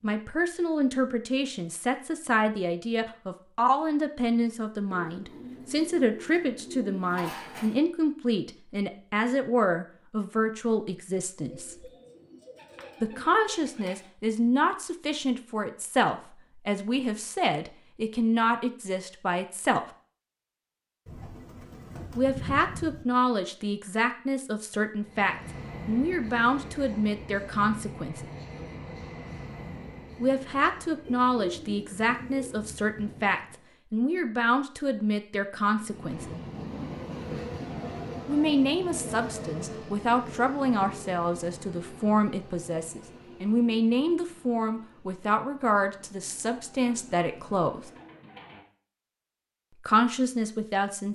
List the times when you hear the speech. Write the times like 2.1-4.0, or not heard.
0.0-11.9, 13.0-19.8, 22.1-28.2, 30.2-36.3, 38.2-47.9, 49.8-51.1.